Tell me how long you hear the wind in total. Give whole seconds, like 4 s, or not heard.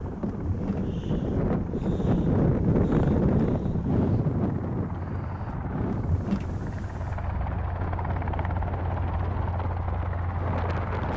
11 s.